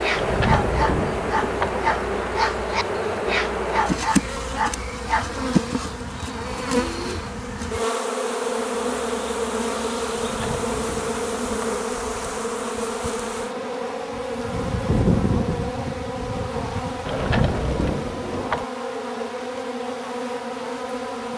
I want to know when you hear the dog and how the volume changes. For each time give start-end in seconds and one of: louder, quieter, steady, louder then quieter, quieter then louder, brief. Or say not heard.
0.0-5.4 steady.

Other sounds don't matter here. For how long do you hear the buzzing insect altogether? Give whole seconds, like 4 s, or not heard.
21 s.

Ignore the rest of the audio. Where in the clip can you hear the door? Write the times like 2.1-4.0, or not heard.
0.1-1.8, 10.2-11.8, 17.1-18.6.